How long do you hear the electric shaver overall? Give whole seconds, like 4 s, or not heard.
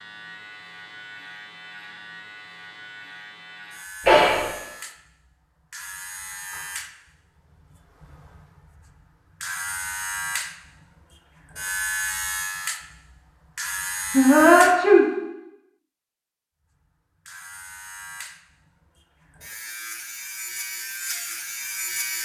20 s.